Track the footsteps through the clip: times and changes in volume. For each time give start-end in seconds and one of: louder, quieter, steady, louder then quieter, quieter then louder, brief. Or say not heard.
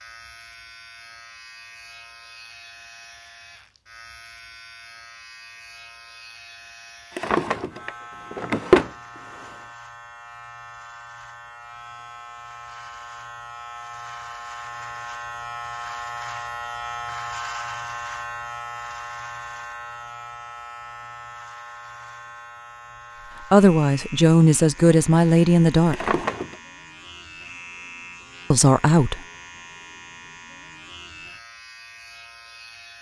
not heard.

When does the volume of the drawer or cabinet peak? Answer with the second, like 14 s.
9 s.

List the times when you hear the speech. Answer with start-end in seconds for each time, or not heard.
23.5-26.1, 28.5-29.2.